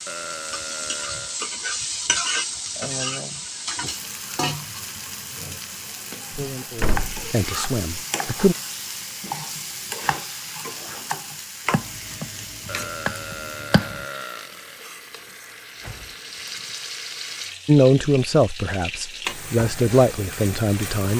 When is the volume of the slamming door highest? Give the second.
7 s.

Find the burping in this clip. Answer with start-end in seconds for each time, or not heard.
0.1-1.4, 12.7-15.3.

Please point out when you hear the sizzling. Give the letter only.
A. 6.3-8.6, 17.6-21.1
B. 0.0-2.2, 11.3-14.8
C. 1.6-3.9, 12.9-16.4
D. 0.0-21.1
D.